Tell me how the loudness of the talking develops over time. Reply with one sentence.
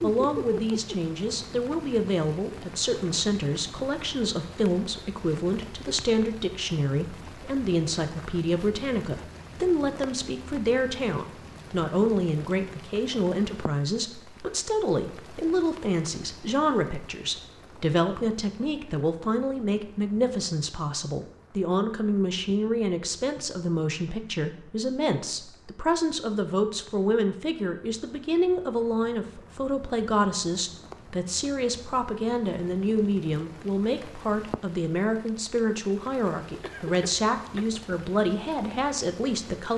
The loudness of the talking stays about the same.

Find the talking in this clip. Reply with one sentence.
You can hear the talking from 0.0 to 39.7 s.